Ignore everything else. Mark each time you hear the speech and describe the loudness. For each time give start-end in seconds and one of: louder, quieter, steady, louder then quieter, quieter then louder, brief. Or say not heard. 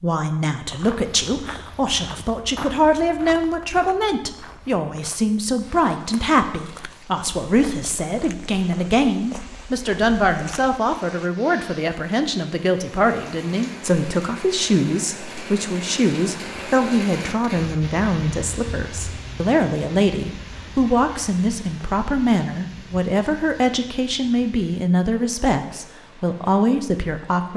0.0-27.5 steady.